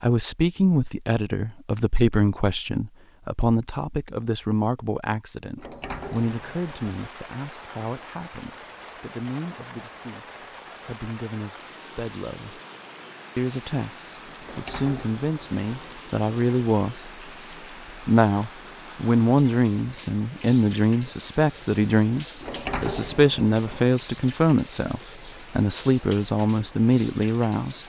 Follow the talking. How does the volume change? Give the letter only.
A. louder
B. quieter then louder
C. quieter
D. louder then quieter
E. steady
B.